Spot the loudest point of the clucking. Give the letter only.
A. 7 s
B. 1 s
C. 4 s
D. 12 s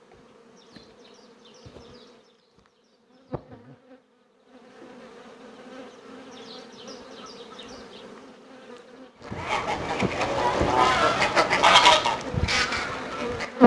D.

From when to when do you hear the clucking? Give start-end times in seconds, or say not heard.
9.2-13.6.